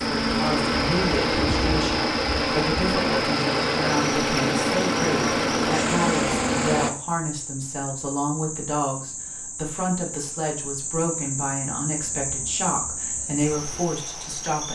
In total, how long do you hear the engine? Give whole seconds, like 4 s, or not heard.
7 s.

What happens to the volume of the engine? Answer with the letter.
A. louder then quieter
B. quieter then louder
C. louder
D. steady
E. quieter
D.